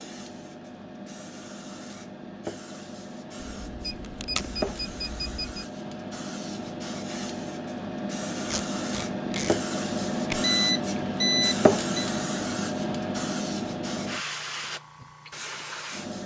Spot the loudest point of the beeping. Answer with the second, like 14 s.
11 s.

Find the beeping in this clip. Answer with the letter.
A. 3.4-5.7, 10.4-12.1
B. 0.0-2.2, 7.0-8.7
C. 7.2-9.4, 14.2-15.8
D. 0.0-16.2
A.